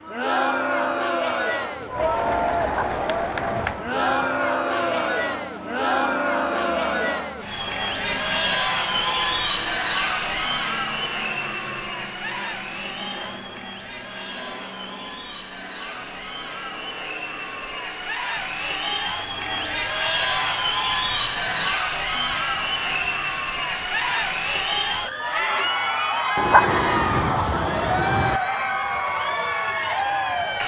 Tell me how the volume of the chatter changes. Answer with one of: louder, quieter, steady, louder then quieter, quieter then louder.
quieter then louder.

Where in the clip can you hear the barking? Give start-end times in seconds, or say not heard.
2.6-4.5, 26.4-28.4.